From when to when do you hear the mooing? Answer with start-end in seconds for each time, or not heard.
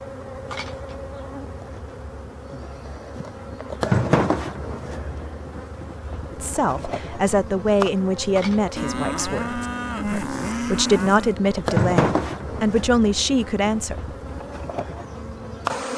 8.8-11.3.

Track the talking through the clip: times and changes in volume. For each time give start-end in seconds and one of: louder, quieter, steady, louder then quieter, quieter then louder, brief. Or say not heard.
6.3-13.9 quieter then louder.